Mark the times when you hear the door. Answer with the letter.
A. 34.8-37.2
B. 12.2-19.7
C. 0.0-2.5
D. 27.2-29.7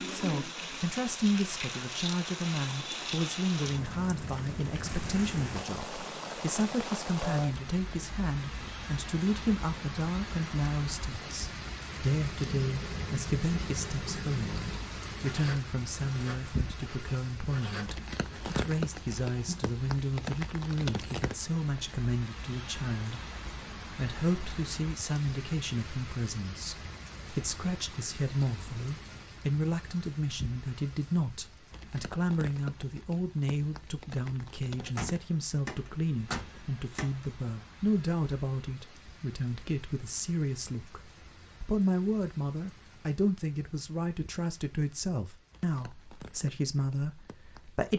A.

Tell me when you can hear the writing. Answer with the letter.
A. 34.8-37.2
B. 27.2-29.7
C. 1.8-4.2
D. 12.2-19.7
D.